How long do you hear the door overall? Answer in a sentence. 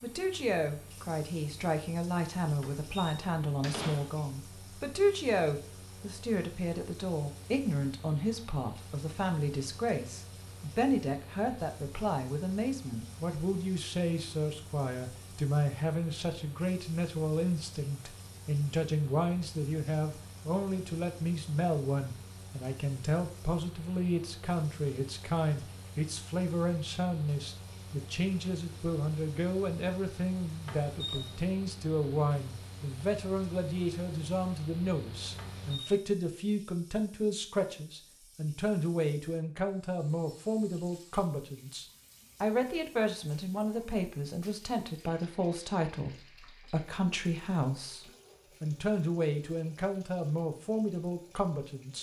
The door can be heard for 3 seconds in total.